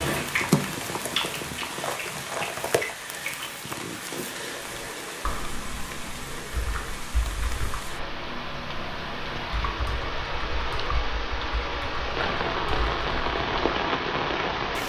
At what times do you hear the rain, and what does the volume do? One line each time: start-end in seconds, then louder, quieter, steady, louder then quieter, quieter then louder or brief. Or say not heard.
0.0-14.8 quieter then louder.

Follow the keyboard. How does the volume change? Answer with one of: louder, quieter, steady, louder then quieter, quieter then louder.
steady.